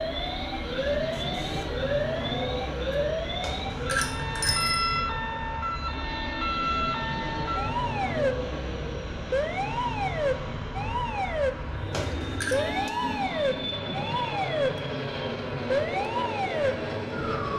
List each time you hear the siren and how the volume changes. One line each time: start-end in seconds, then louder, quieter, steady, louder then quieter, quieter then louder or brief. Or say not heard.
0.0-17.5 steady.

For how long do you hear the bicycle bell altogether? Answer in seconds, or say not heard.
2 s.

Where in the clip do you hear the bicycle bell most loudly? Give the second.
5 s.